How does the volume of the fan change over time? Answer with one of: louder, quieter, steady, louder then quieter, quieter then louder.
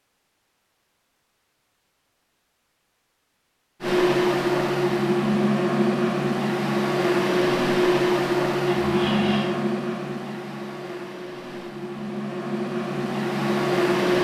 quieter then louder.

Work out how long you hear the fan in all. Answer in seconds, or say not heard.
10 s.